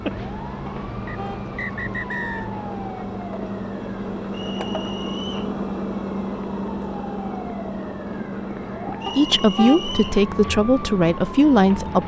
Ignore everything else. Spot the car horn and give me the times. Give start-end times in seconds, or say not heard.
0.7-1.4, 9.1-9.8.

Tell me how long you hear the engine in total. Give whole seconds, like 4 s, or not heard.
12 s.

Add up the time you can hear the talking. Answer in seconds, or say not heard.
3 s.